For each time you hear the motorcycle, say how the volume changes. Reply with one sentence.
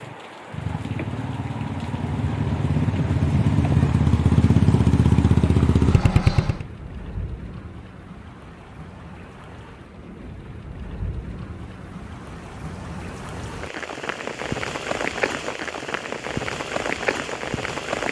You can hear the motorcycle from 0.0 to 6.7 s, getting louder.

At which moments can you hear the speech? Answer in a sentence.
You can't hear the speech here.